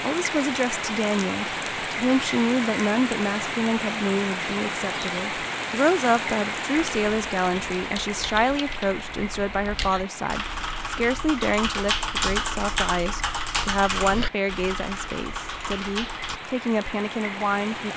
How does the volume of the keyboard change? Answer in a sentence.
The loudness of the keyboard goes up, then down.